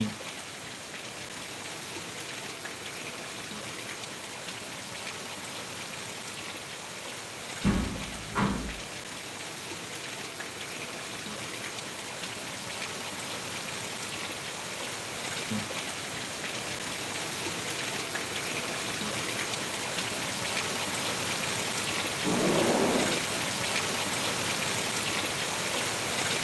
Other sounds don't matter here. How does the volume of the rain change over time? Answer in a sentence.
The loudness of the rain goes up.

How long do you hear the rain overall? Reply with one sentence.
You can hear the rain for 26 seconds altogether.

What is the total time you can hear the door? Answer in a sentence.
The door can be heard for 2 seconds in total.